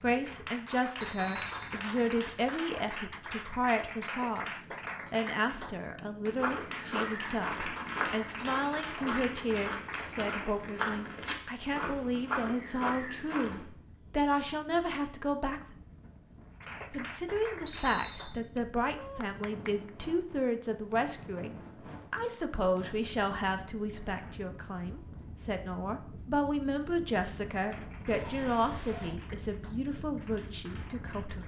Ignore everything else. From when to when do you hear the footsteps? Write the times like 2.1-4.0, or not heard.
6.2-13.7.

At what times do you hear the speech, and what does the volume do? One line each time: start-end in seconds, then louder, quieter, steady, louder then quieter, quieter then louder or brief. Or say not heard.
0.0-15.8 steady
16.9-31.4 steady.